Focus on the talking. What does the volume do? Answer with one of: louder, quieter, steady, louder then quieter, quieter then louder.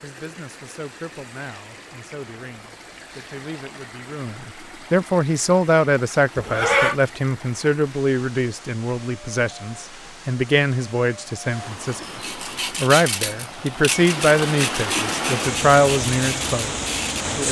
louder.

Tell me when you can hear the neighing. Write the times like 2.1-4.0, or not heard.
6.3-7.0.